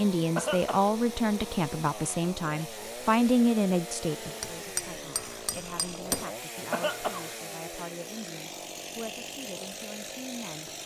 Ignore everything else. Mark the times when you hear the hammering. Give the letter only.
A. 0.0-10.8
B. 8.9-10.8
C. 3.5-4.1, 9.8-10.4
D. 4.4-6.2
D.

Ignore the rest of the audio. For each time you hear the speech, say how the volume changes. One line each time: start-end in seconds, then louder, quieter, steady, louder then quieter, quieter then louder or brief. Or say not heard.
0.0-10.8 quieter.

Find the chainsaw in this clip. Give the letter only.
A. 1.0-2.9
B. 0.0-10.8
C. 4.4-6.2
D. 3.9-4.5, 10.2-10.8
B.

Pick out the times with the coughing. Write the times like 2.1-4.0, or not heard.
0.3-0.9, 6.7-7.3.